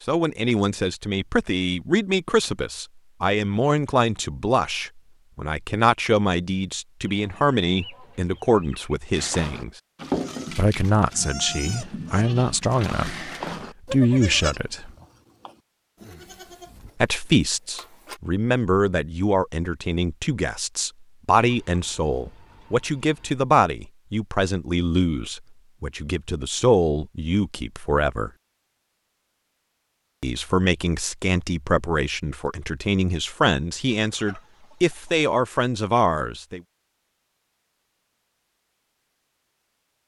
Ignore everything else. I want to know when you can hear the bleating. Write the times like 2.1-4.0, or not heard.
9.1-18.2.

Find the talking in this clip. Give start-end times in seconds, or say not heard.
0.1-9.7, 10.5-13.2, 13.9-14.9, 17.0-28.3, 30.2-36.6.